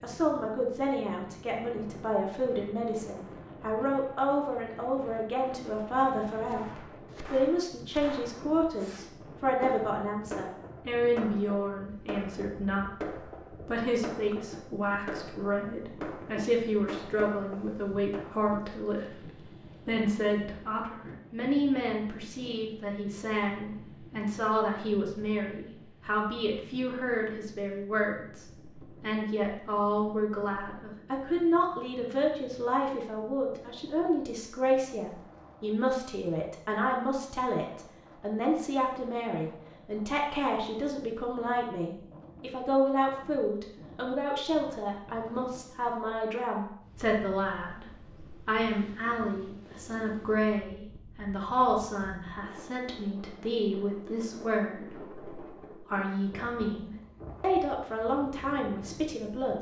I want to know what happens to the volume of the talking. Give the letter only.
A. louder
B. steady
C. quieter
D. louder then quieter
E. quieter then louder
B.